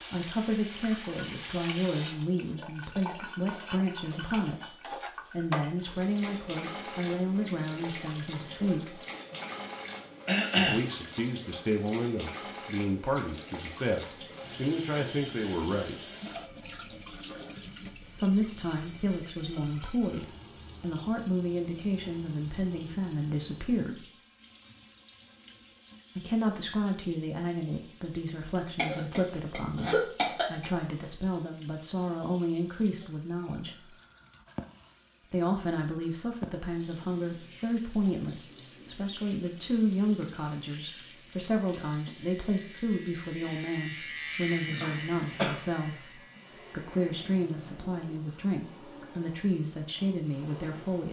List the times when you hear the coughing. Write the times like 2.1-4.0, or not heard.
10.2-10.8, 28.8-30.6, 44.8-45.5.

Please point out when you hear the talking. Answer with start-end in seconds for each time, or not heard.
0.1-8.9, 10.6-16.1, 18.1-24.0, 26.1-33.9, 35.3-51.0.